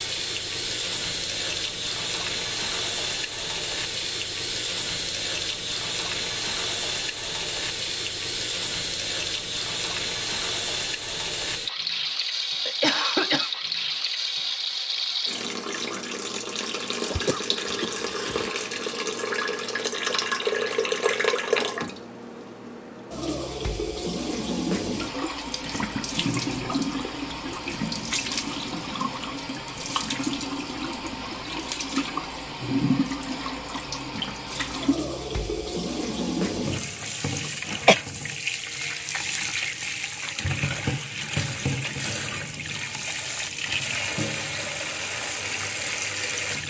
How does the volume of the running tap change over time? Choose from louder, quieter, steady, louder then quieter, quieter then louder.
steady.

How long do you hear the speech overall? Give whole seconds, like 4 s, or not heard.
not heard.